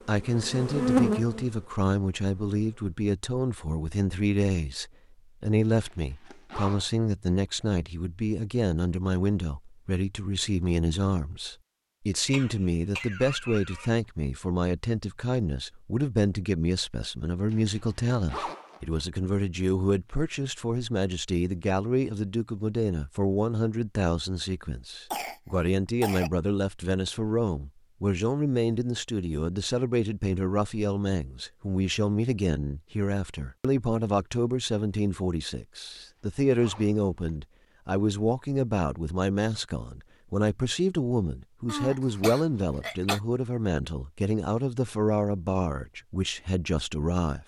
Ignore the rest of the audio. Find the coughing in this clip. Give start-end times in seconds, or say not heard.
12.2-13.9, 25.1-26.3, 41.6-43.2.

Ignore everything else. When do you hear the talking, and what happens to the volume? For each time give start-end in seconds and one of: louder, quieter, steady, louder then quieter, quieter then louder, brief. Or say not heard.
0.1-47.4 steady.